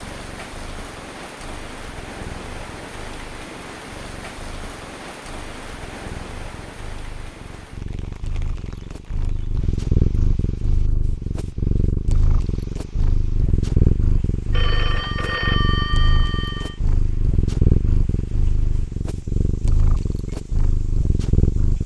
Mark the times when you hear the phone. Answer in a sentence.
The phone can be heard from 14.5 to 16.8 s.